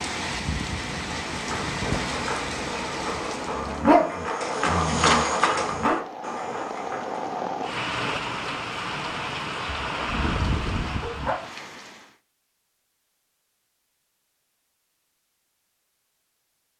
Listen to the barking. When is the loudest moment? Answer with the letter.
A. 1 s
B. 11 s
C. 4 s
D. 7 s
C.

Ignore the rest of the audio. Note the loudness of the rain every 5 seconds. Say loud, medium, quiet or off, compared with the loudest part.
loud, loud, loud, off.